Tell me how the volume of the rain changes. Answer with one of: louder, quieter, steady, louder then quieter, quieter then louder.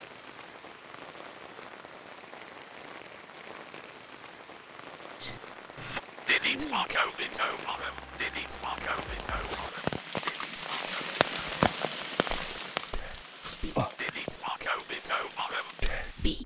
louder then quieter.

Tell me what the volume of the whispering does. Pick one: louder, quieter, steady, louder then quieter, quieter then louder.
quieter then louder.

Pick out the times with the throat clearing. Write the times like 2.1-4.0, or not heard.
6.5-7.3.